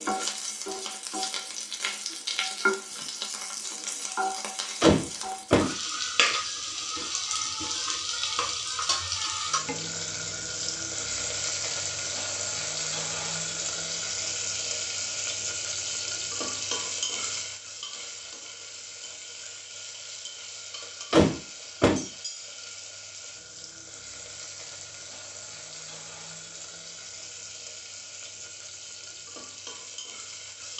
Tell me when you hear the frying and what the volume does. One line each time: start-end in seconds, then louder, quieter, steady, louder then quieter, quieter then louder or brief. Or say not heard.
0.0-30.7 quieter.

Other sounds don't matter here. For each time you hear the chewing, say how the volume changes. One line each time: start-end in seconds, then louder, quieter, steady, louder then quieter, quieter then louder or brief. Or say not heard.
not heard.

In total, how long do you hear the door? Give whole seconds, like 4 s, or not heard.
2 s.